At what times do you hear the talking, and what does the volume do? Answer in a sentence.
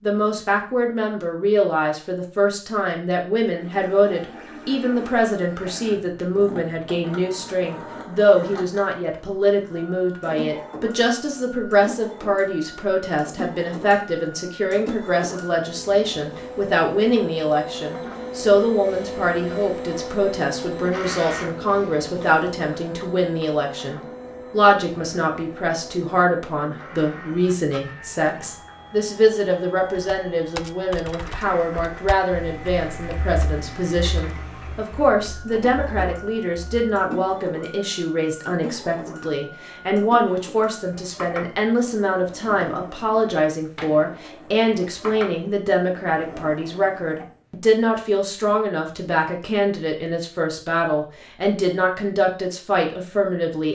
You can hear the talking from 0.0 to 53.7 s, at a steady volume.